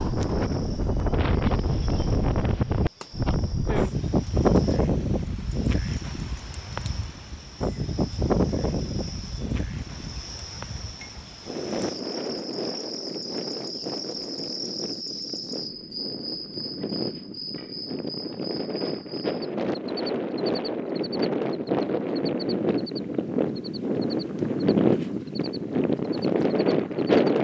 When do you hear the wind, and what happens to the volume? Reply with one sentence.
The wind can be heard from 0.0 to 27.3 s, getting quieter then louder.